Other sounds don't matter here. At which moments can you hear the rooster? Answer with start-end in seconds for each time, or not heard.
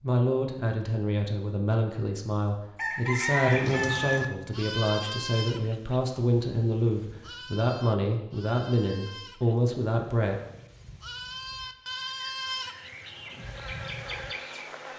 2.8-4.2.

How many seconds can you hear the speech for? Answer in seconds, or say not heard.
10 s.